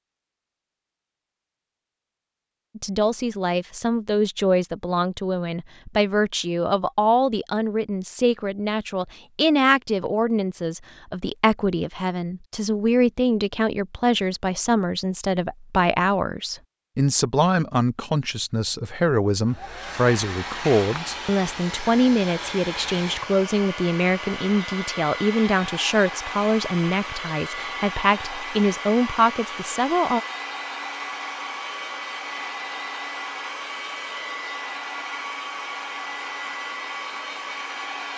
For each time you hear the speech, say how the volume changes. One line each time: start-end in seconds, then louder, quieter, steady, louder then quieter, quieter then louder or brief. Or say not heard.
2.8-30.2 steady.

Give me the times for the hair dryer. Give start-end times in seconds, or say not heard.
19.4-38.1.